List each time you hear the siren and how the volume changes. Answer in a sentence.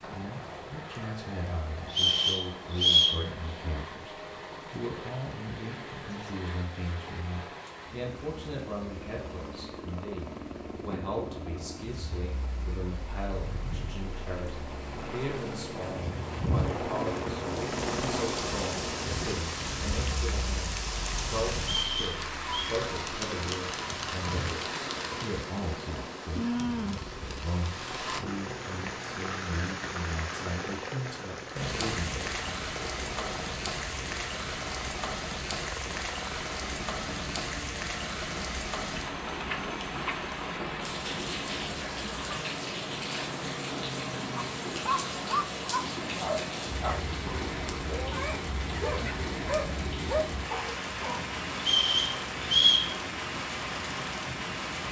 You can't hear the siren here.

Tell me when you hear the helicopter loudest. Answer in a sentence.
The loudest moment of the helicopter is at 17 seconds.